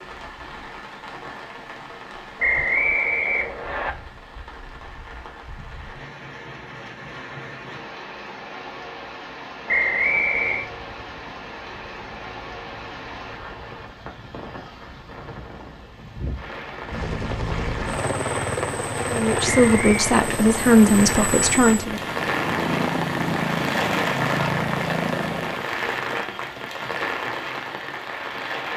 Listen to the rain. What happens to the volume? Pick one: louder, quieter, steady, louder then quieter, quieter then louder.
louder.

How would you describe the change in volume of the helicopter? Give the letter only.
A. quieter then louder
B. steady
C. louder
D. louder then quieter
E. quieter
C.